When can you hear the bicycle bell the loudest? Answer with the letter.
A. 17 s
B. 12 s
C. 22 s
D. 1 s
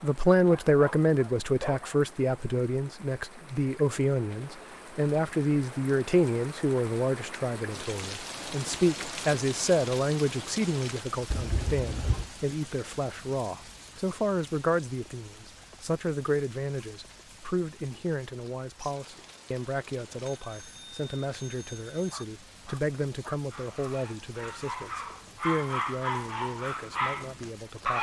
B.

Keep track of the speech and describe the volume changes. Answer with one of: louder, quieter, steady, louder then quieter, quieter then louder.
quieter.